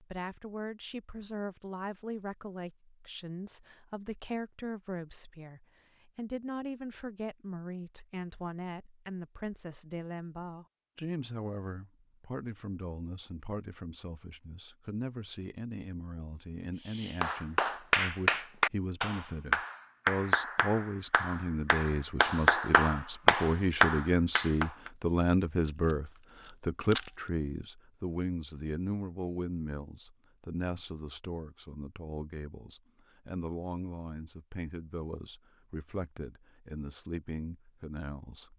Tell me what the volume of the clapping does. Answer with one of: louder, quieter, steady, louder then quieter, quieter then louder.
quieter then louder.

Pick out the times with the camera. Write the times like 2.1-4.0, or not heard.
25.4-27.1.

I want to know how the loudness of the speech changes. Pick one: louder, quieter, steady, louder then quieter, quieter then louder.
louder then quieter.